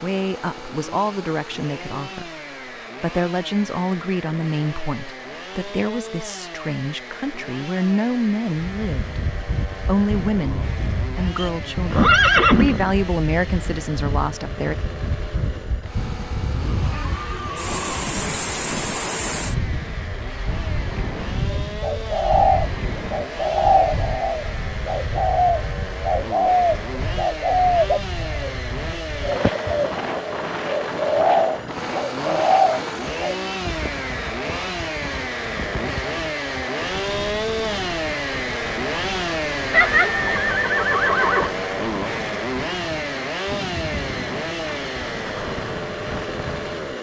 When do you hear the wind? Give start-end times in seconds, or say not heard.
8.5-46.9.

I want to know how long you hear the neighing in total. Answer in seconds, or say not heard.
5 s.